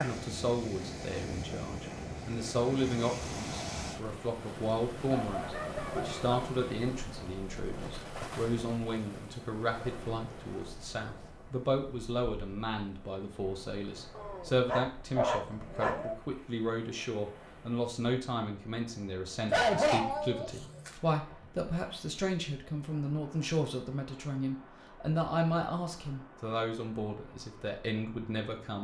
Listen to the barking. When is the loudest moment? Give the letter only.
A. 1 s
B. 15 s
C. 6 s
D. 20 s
D.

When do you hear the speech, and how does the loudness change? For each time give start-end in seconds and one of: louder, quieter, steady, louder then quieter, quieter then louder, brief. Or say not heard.
0.0-28.7 steady.